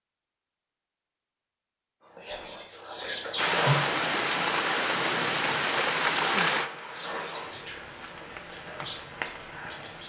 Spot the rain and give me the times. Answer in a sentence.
The rain can be heard from 3.4 to 10.0 s.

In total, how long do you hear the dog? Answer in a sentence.
The dog can't be heard in this clip.